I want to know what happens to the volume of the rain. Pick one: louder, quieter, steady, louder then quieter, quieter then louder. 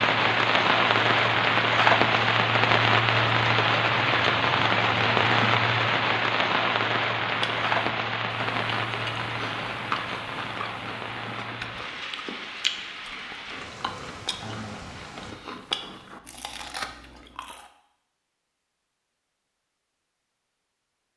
quieter.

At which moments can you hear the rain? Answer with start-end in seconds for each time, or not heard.
0.0-15.3.